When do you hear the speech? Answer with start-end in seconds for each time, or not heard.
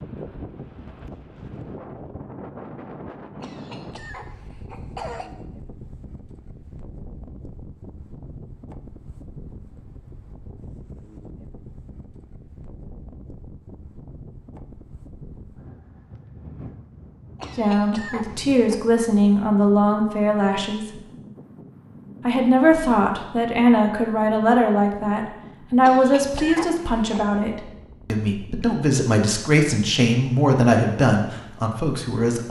17.6-21.0, 22.2-32.4.